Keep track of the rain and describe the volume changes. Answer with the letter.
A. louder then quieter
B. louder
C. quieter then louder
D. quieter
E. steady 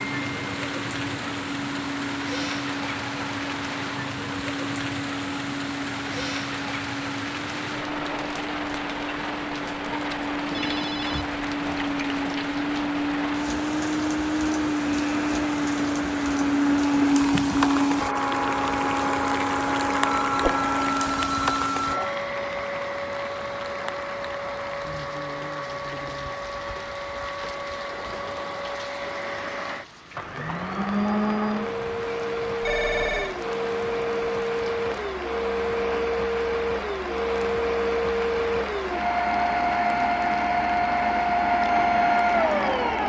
D.